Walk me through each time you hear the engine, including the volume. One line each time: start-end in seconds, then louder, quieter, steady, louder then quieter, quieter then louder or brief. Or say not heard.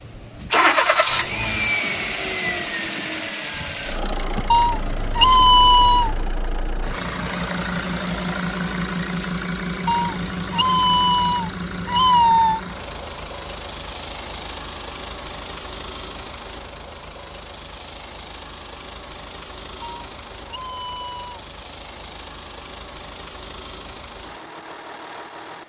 0.0-25.6 quieter.